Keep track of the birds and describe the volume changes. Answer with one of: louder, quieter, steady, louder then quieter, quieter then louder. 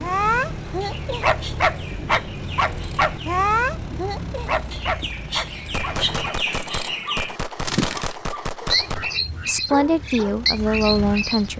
louder.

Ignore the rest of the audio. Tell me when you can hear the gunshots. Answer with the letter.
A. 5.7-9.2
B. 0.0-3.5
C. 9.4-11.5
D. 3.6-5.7
A.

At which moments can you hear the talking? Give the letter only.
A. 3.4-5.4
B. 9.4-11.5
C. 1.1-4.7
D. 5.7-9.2
B.